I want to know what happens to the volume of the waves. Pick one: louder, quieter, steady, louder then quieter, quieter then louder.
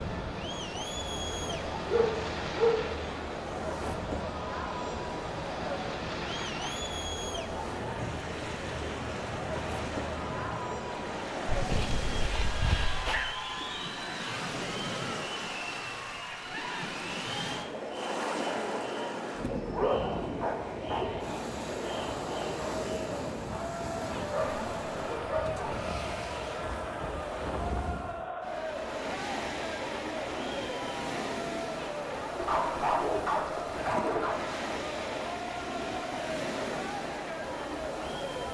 steady.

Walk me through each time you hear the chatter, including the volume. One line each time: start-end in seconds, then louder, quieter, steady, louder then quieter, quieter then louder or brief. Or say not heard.
0.0-38.4 steady.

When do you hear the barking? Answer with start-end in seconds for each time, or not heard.
1.5-3.0, 11.4-13.3, 19.4-21.1, 24.3-25.9, 32.4-34.5.